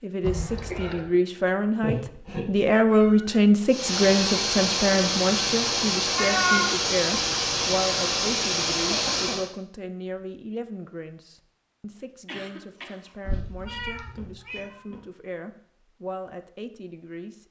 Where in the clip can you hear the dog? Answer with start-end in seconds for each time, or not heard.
not heard.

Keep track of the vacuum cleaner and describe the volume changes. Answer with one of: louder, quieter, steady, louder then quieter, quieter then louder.
steady.